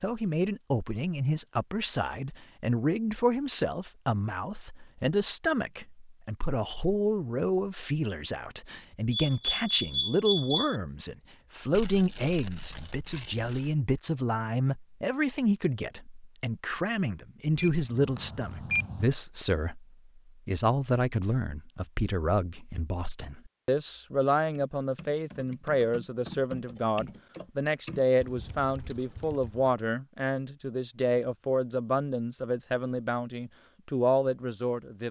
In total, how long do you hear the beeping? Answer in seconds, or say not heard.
3 s.